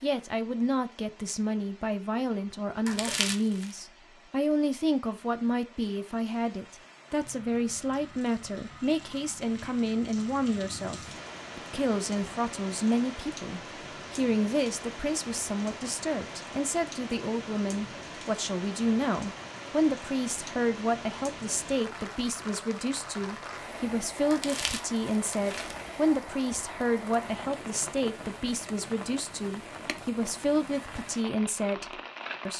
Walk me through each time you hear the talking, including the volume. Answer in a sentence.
You can hear the talking from 0.0 to 32.5 s, at a steady volume.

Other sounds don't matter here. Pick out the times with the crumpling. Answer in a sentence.
The crumpling can be heard from 2.9 to 3.8 s and from 24.3 to 25.9 s.